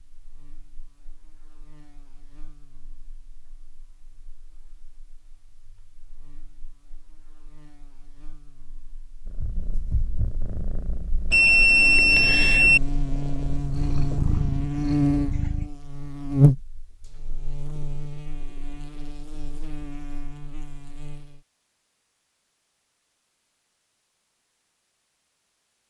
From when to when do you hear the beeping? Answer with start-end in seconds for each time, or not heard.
11.3-12.8.